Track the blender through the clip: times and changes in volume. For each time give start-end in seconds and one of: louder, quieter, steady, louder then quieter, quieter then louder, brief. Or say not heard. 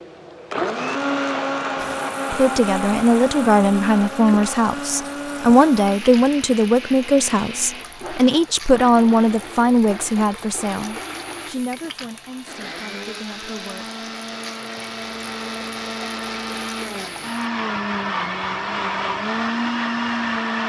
0.0-20.6 quieter then louder.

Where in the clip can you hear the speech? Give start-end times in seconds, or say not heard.
2.3-13.9.